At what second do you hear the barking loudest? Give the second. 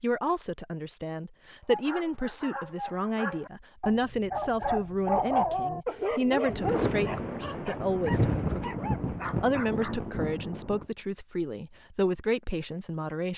5 s.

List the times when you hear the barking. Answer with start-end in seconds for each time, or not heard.
1.6-10.1.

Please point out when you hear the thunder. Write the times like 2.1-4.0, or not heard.
6.5-10.8.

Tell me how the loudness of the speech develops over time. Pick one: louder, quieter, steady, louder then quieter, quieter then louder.
steady.